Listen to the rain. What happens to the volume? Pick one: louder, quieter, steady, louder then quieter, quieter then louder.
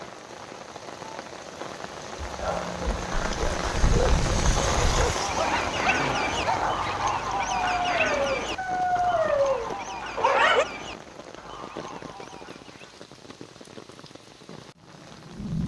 louder then quieter.